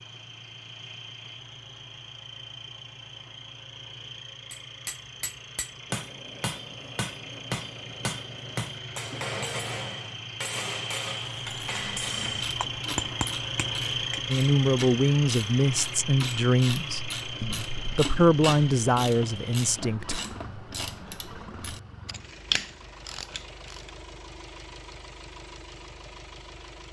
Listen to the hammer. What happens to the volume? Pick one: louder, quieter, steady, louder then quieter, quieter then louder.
steady.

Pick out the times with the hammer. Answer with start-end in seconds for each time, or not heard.
4.5-14.2.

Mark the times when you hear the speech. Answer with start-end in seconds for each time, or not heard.
14.2-20.2.